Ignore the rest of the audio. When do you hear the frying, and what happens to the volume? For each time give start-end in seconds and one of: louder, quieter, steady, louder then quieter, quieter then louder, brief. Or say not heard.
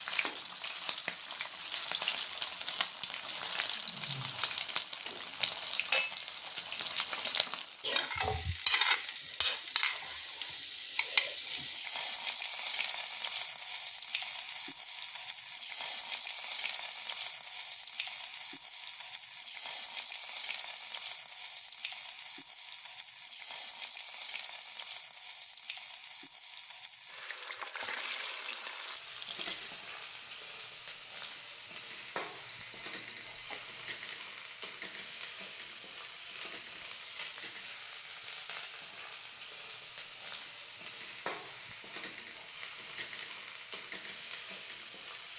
0.0-45.3 quieter.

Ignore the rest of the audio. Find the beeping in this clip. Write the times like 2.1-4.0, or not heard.
32.5-33.9.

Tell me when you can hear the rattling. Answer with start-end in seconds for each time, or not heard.
28.8-29.6.